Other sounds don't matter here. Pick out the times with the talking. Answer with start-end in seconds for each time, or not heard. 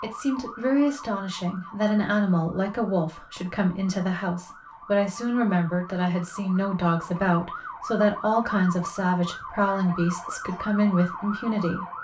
0.0-11.8.